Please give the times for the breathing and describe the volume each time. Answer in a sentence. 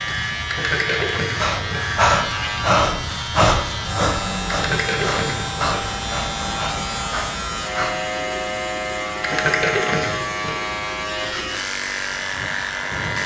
The breathing can be heard from 1.4 to 8.1 s, getting quieter.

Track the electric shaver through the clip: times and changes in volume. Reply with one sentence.
The electric shaver can be heard from 0.0 to 13.2 s, at a steady volume.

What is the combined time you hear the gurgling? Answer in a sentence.
The gurgling can be heard for 4 seconds in total.